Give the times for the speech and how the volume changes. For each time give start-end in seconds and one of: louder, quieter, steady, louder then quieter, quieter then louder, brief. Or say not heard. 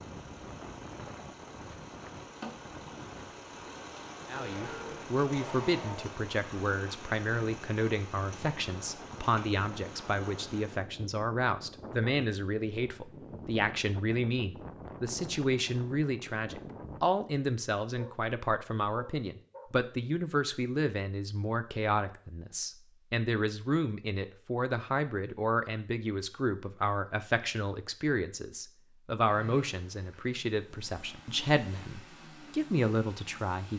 4.2-33.7 steady.